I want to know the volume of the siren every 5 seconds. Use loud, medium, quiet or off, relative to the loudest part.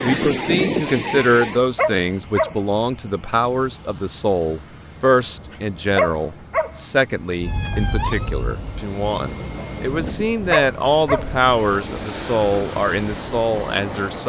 loud, medium, off.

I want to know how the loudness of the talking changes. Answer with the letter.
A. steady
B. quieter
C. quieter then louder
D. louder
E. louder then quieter
A.